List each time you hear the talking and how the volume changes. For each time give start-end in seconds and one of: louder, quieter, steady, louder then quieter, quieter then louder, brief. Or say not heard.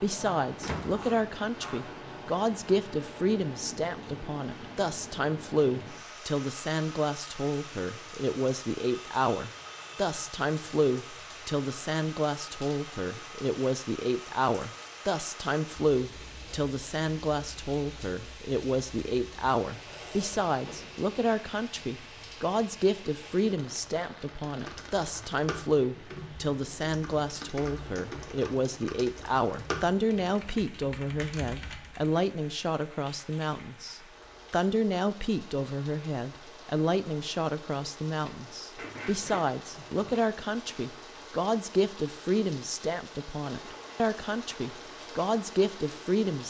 0.0-46.4 steady.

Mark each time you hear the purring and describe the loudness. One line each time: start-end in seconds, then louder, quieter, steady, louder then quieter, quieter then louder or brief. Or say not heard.
not heard.